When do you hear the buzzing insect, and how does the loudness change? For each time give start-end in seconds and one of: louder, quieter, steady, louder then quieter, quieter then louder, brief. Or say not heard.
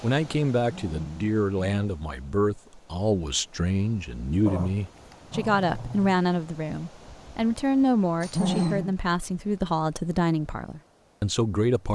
not heard.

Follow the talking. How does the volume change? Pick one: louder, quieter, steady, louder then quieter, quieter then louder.
steady.